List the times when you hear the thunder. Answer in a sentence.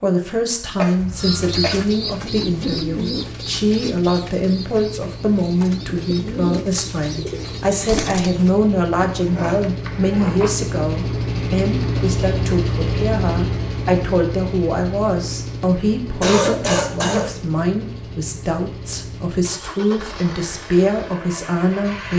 You can't hear the thunder here.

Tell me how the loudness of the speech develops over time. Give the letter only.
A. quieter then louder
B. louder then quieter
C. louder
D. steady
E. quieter
D.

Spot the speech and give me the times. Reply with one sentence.
The speech can be heard from 0.0 to 22.1 s.